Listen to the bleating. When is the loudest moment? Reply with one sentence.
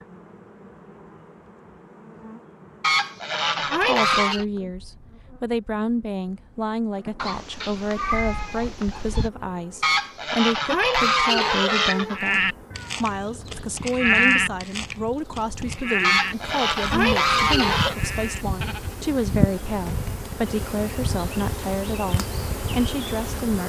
The volume of the bleating peaks at 14 seconds.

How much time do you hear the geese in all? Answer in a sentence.
The geese can be heard for 6 seconds in total.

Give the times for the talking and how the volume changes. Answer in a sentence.
The talking can be heard from 3.8 to 23.6 s, at a steady volume.